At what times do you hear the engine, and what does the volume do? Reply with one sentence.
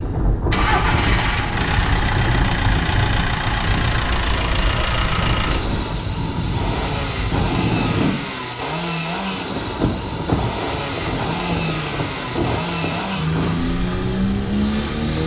You can hear the engine from 0.5 to 15.2 s, at a steady volume.